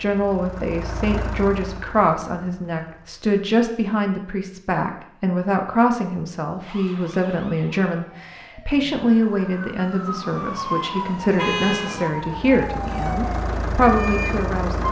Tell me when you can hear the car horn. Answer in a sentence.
You can hear the car horn from 11.2 to 11.9 s.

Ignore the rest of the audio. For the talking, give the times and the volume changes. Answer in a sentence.
The talking can be heard from 0.0 to 14.8 s, at a steady volume.